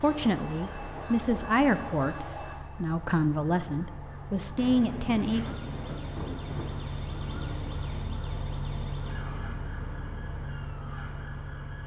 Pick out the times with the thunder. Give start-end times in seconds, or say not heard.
4.5-8.1.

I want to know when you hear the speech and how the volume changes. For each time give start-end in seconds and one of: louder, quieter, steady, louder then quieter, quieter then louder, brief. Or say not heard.
0.0-5.5 steady.